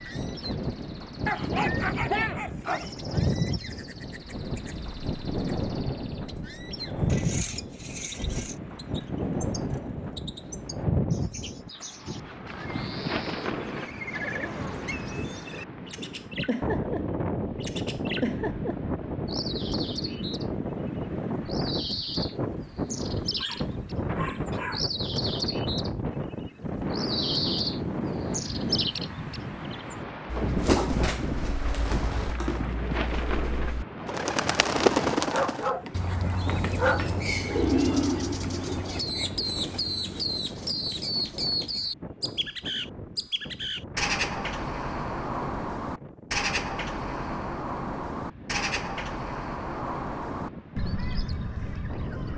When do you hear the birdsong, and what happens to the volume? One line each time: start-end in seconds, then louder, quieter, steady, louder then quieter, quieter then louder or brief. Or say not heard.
0.0-52.3 louder.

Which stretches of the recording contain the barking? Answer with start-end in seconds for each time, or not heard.
1.2-3.0, 23.4-24.9, 35.1-37.1.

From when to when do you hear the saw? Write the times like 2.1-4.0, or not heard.
7.0-8.6.